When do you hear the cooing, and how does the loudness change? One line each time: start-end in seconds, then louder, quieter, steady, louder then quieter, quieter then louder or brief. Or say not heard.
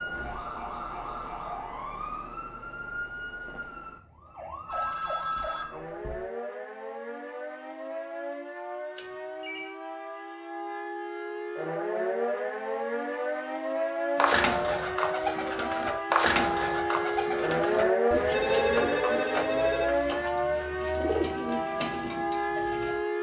14.2-23.0 quieter then louder.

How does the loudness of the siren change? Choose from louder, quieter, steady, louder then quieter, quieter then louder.
louder.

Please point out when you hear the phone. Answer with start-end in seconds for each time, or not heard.
4.7-6.2, 8.9-9.8, 18.3-20.3.